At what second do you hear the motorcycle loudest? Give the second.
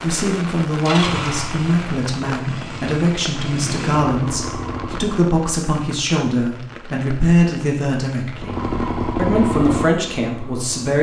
9 s.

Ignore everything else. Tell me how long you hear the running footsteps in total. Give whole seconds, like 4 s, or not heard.
not heard.